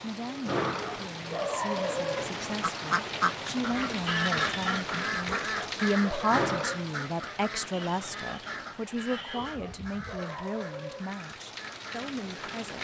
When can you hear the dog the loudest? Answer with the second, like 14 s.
2 s.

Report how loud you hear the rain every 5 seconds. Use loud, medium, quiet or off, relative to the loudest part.
loud, loud, medium.